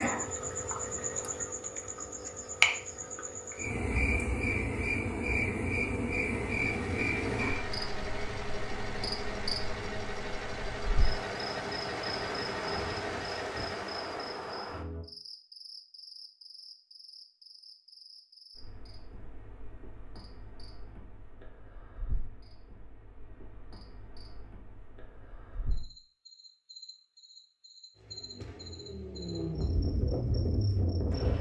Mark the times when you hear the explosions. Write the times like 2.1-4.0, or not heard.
not heard.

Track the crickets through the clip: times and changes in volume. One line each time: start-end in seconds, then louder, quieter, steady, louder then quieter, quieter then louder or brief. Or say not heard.
0.0-31.3 quieter then louder.